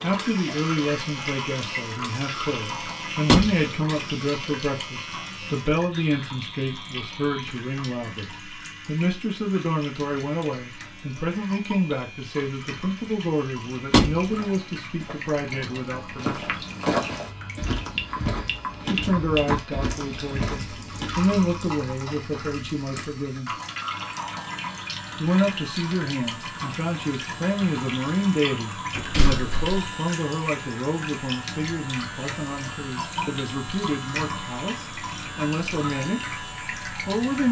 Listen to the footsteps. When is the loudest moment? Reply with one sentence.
The loudest moment of the footsteps is at 17 seconds.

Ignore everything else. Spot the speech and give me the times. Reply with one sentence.
The speech can be heard from 0.0 to 16.6 s, from 18.9 to 23.5 s and from 25.1 to 37.4 s.